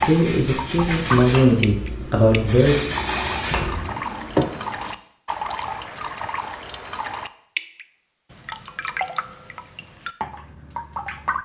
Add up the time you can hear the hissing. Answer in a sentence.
The hissing can be heard for 5 seconds in total.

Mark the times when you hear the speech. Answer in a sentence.
You can hear the speech from 0.0 to 2.8 s.